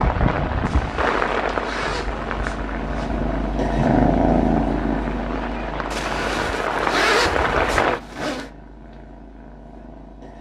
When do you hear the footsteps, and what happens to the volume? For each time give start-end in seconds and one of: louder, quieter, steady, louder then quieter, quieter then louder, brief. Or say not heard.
not heard.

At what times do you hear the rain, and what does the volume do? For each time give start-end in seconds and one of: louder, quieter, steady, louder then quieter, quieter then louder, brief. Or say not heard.
0.0-8.0 quieter then louder.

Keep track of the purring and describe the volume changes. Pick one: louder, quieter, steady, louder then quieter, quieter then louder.
louder then quieter.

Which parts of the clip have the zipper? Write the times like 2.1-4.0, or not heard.
0.7-3.1, 5.9-8.5.